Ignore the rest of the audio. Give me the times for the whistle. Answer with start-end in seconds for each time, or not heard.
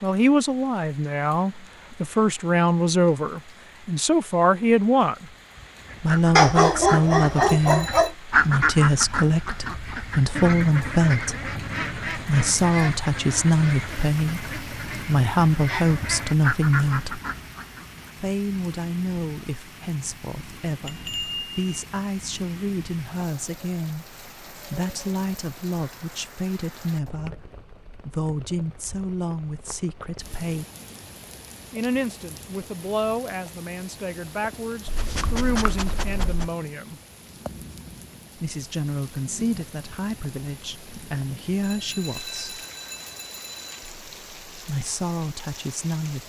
not heard.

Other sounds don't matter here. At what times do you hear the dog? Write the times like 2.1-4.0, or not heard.
6.3-8.2, 34.9-36.5.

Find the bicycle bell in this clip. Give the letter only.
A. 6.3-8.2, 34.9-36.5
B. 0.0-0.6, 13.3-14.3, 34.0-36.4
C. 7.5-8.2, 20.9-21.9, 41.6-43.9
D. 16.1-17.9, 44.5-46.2
C.